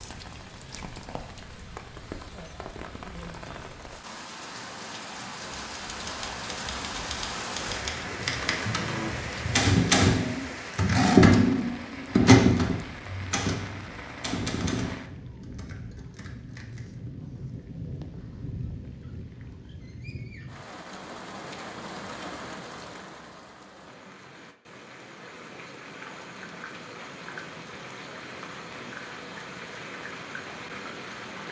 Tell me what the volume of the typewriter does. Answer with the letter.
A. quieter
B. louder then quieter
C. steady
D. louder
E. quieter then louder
B.